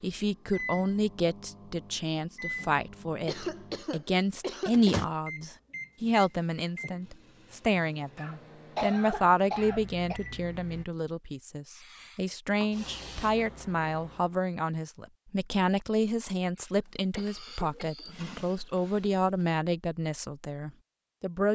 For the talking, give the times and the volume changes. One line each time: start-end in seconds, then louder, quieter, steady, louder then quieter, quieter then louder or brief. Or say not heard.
0.0-21.5 steady.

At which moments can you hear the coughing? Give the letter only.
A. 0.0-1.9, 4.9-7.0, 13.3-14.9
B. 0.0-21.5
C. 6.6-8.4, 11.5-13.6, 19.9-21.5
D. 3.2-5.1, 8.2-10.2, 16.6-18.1
D.